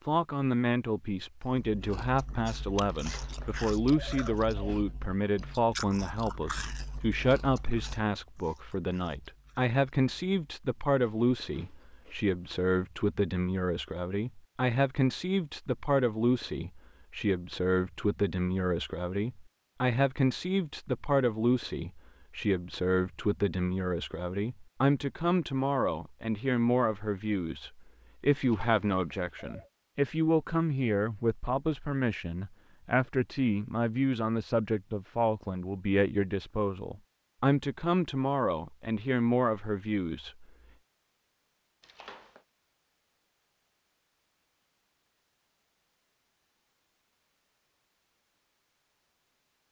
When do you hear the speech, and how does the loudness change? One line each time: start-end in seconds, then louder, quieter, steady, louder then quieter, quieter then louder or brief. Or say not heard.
0.1-40.5 steady.